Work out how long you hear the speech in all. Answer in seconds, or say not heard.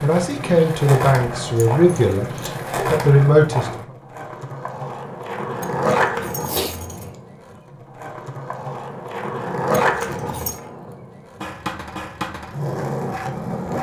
4 s.